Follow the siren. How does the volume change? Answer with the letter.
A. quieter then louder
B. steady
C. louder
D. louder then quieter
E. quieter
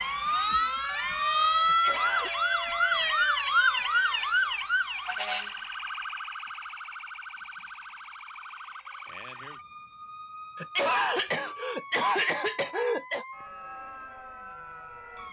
E.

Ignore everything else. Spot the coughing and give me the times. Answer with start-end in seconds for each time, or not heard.
1.6-2.4, 10.6-13.2.